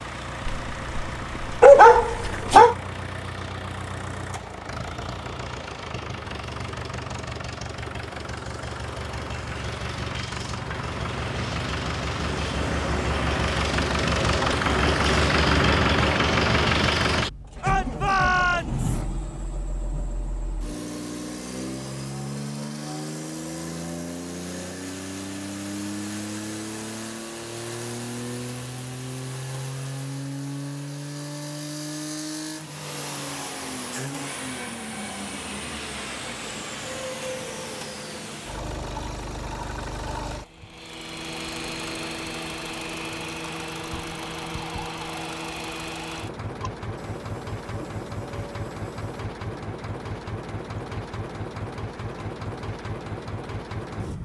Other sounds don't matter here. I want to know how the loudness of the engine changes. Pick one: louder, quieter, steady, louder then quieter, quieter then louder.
louder then quieter.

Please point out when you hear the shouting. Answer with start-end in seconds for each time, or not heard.
17.6-18.9.